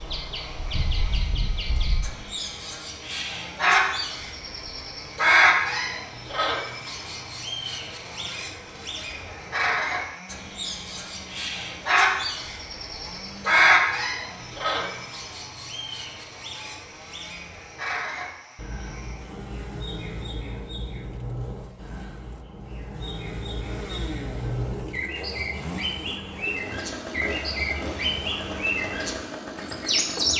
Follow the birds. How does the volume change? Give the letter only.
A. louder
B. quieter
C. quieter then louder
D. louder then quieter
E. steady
C.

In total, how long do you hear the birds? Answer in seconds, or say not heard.
30 s.